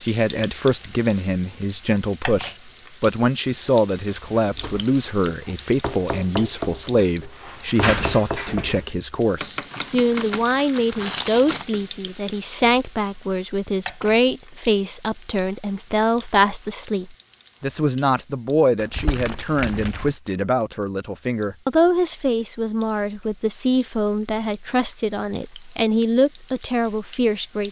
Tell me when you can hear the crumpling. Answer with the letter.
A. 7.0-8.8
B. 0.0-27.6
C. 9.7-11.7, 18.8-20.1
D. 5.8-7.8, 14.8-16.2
C.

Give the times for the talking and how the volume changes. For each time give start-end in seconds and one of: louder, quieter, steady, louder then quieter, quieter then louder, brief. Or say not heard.
0.0-27.6 steady.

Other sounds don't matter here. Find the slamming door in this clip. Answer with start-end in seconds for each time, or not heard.
7.0-8.8.